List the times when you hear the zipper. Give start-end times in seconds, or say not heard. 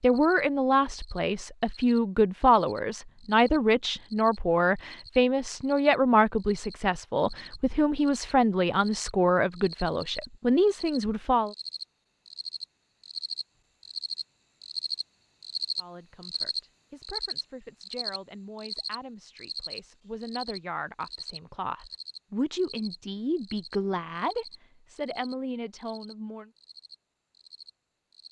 not heard.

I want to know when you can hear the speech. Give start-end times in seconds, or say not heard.
0.0-11.6, 15.8-26.5.